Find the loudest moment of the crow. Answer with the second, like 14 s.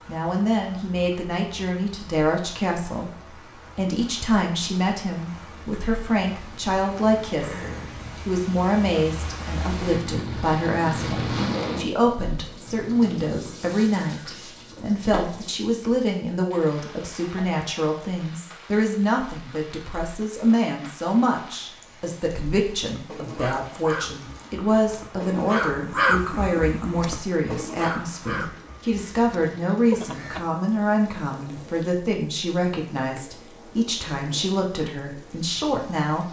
26 s.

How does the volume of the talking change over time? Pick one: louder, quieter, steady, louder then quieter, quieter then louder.
steady.